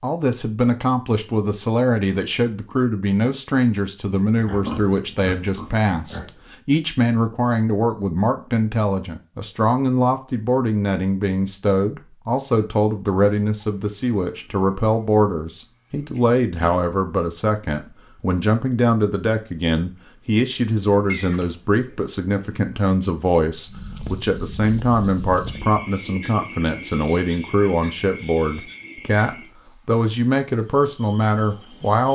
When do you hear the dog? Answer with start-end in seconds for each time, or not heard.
not heard.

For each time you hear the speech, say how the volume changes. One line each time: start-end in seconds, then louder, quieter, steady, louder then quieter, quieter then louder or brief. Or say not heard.
0.0-32.1 steady.